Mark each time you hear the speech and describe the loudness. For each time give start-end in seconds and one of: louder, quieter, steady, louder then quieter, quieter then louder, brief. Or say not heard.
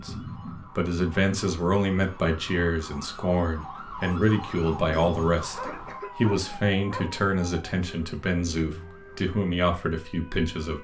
0.0-10.7 steady.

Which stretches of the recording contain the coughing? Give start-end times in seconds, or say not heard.
0.1-0.7, 5.6-6.3.